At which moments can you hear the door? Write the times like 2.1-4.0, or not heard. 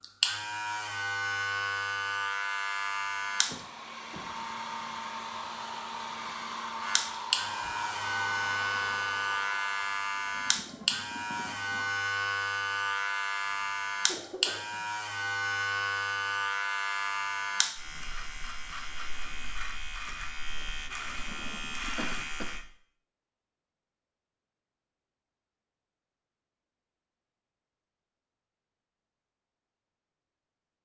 not heard.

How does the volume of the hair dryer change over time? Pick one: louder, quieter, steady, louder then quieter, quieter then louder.
steady.